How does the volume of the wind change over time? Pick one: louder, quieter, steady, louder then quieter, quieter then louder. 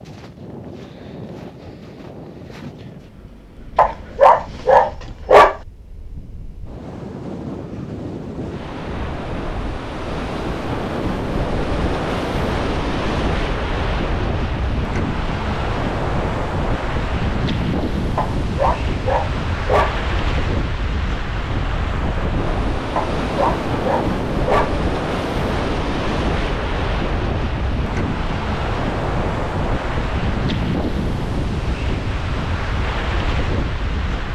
louder.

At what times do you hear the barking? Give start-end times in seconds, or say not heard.
3.8-5.5, 18.1-19.9, 22.9-24.8.